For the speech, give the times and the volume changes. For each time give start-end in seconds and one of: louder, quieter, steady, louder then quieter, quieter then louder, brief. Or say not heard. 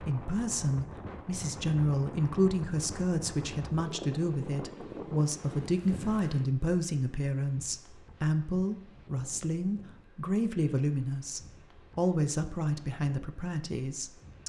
0.0-14.4 steady.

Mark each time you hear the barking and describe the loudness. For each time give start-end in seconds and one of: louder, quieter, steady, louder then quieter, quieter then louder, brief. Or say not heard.
not heard.